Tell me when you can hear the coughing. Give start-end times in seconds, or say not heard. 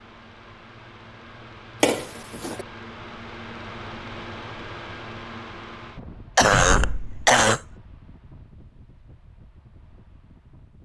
1.8-2.6, 6.3-7.6.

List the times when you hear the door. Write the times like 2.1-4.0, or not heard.
6.4-7.4.